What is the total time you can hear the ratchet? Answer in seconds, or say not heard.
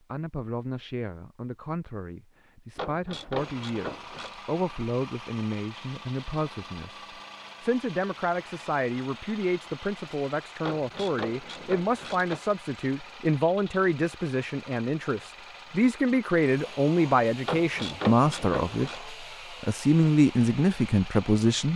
5 s.